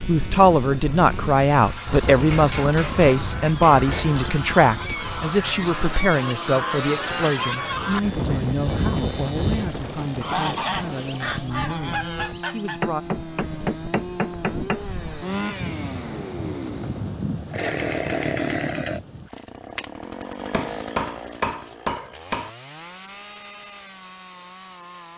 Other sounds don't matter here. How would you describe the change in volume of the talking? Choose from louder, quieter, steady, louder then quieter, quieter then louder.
quieter.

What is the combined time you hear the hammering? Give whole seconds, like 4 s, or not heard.
6 s.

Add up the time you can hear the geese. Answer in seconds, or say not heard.
11 s.